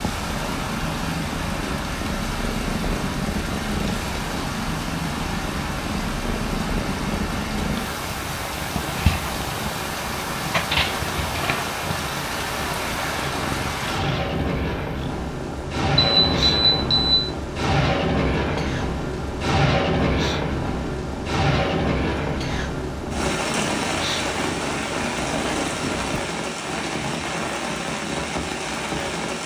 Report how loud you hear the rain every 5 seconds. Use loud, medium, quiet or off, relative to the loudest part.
medium, medium, loud, loud, loud, loud.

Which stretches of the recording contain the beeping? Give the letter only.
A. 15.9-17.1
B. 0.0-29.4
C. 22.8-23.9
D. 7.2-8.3
A.